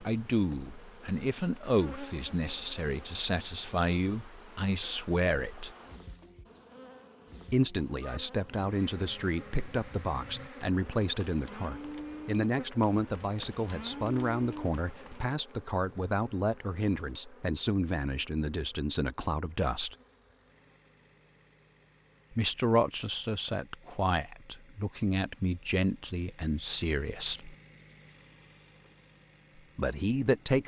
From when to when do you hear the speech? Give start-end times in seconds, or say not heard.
0.0-5.7, 7.5-19.9, 22.3-27.6, 29.8-30.6.